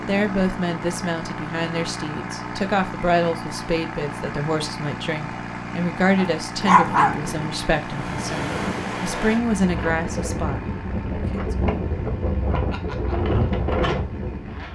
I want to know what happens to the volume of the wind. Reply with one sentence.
The volume of the wind goes up.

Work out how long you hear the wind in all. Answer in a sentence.
You can hear the wind for 8 seconds altogether.